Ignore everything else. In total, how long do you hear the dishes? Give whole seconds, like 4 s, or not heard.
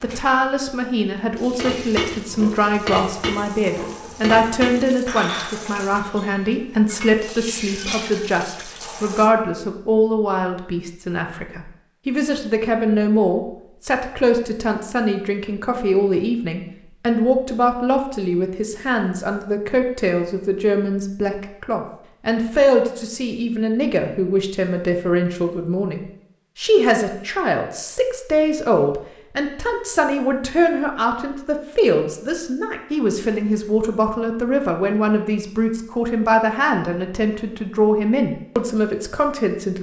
7 s.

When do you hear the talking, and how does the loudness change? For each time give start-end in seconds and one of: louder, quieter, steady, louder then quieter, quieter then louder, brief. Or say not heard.
0.0-39.7 steady.